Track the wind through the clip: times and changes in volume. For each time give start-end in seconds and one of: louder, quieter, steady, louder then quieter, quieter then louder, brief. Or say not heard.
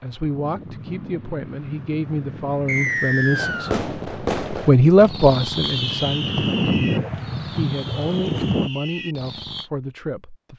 0.0-8.7 louder.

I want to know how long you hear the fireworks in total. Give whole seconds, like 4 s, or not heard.
6 s.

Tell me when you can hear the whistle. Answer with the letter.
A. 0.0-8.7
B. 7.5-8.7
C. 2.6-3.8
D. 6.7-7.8
C.